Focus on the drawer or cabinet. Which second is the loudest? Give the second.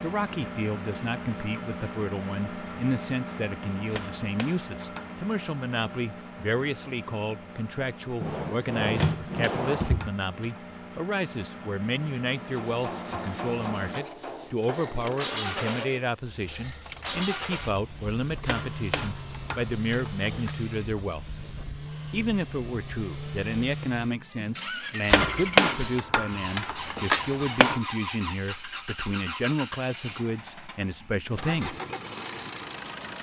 9 s.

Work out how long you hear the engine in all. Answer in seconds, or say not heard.
33 s.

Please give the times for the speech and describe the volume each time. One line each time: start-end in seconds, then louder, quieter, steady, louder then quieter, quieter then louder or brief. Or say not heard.
0.0-21.2 steady
22.1-31.8 steady.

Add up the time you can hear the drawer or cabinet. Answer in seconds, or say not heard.
3 s.